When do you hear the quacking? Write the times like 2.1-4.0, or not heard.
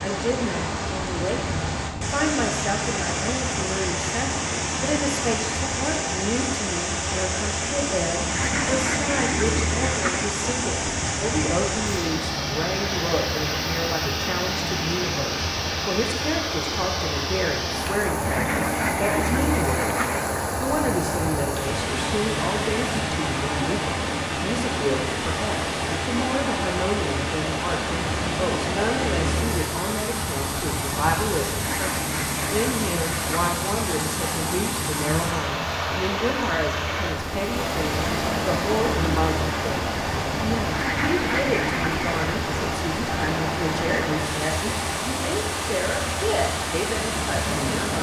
8.3-10.3, 18.2-20.2, 31.7-33.5, 40.7-42.2.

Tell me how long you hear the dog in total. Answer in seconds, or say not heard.
not heard.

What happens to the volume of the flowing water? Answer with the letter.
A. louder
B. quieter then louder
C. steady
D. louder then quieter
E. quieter
C.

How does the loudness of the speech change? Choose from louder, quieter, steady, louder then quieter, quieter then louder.
steady.